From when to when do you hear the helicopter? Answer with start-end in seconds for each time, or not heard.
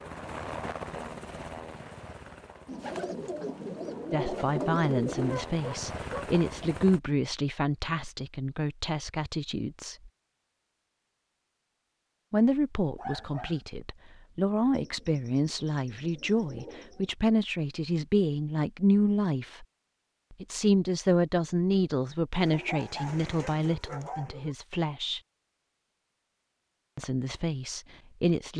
0.0-7.0.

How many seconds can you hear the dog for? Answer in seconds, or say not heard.
4 s.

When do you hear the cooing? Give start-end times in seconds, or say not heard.
2.6-5.5, 14.7-17.1, 22.3-24.4.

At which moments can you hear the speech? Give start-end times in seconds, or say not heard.
4.1-10.1, 12.3-19.6, 20.3-25.2, 26.9-28.5.